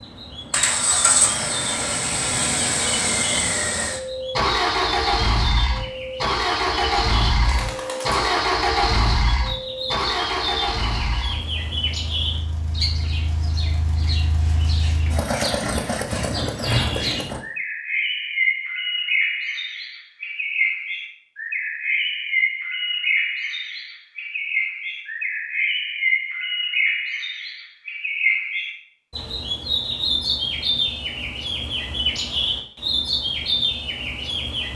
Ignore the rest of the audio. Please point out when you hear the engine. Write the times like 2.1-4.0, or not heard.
0.0-17.4.